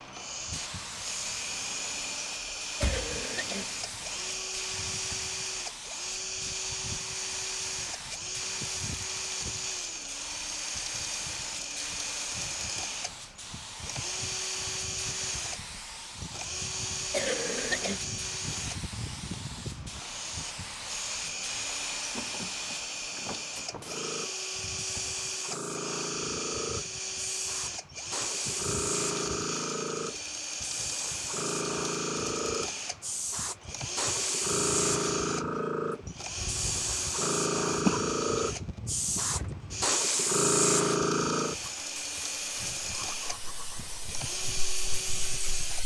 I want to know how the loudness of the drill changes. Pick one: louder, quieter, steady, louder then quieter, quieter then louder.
steady.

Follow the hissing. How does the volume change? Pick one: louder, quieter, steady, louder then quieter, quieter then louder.
louder.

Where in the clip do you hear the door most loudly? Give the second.
3 s.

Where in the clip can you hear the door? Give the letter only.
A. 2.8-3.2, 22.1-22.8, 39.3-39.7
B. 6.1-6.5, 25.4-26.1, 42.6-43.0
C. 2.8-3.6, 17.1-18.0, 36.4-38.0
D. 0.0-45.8
A.